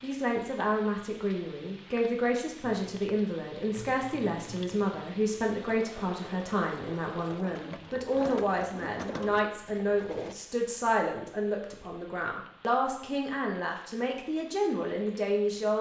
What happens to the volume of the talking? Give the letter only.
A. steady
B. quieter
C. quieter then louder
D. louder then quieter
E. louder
A.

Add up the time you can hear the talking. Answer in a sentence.
The talking can be heard for 16 seconds in total.